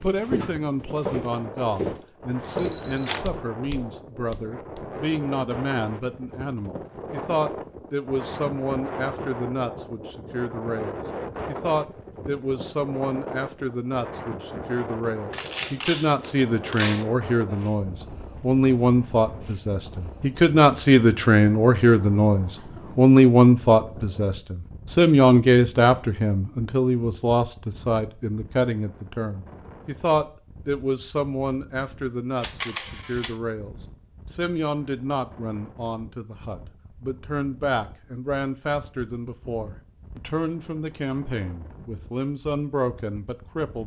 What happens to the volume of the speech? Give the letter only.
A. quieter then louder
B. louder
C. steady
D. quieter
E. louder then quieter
E.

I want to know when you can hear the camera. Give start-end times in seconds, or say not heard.
2.5-3.2, 15.3-17.1, 32.4-33.4.